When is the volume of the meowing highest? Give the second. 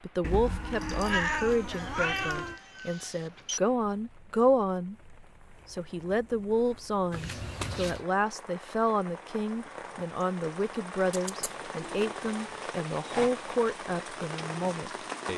1 s.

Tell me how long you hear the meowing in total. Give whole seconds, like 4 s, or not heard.
5 s.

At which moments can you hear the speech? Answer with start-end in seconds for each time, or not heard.
0.0-15.3.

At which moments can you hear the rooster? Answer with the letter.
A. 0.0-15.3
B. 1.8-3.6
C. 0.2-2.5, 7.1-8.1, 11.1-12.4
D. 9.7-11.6
B.